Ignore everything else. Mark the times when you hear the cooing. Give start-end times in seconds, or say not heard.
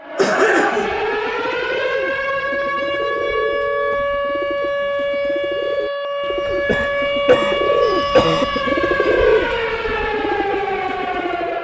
0.9-11.5.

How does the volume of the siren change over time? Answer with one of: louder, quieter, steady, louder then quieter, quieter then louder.
steady.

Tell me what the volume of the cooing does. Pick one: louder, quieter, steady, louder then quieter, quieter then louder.
louder.